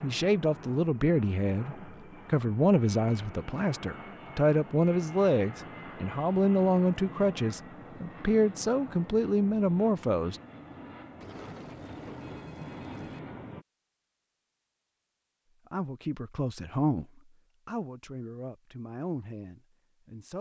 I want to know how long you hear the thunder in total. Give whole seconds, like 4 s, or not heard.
2 s.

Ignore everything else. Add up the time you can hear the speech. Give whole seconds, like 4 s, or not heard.
15 s.